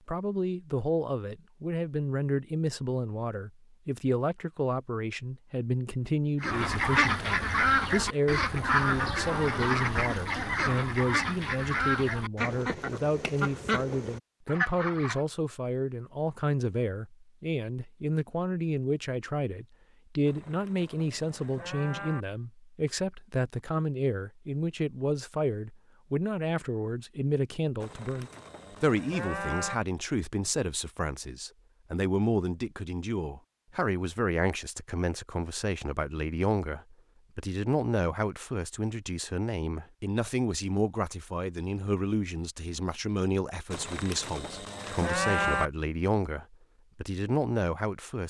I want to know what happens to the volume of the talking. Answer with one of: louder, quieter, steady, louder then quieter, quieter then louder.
steady.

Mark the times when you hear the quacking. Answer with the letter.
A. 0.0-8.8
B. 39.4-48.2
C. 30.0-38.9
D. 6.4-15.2
D.